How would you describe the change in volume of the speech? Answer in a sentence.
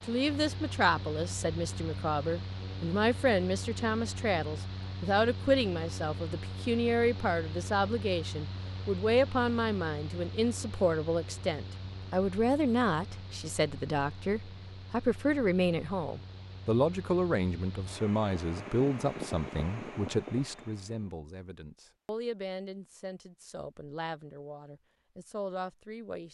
The loudness of the speech goes down.